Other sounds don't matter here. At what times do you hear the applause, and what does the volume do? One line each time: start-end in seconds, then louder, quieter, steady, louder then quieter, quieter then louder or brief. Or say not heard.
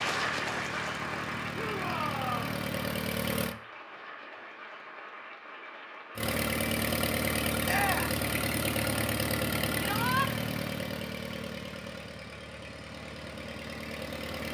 0.0-6.3 quieter.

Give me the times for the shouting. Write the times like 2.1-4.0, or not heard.
1.5-2.6, 7.7-8.2, 9.8-10.3.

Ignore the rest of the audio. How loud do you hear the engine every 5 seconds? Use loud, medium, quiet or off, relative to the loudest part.
medium, loud, medium.